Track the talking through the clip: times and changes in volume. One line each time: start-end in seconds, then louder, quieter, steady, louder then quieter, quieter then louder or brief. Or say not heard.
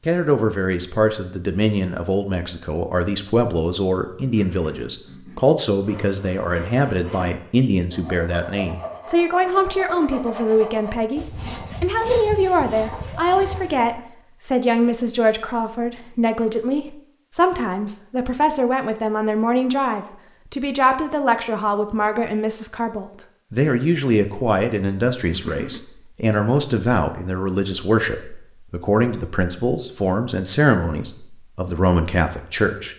0.1-32.9 steady.